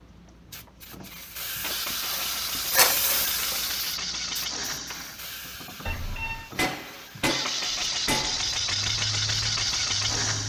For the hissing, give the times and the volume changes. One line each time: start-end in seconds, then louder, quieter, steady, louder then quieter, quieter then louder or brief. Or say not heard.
0.0-10.4 louder then quieter.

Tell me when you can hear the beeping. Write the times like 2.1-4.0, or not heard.
5.8-6.5.